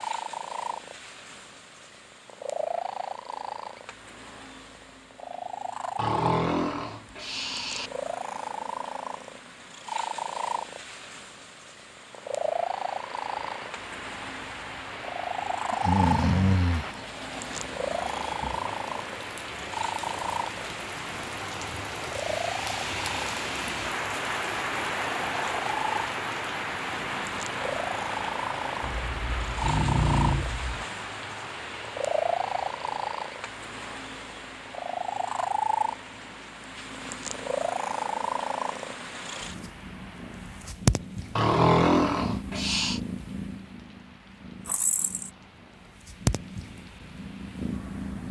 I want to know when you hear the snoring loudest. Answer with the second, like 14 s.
42 s.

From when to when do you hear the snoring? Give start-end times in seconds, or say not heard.
6.0-7.9, 15.7-18.6, 29.1-30.9, 41.4-43.0.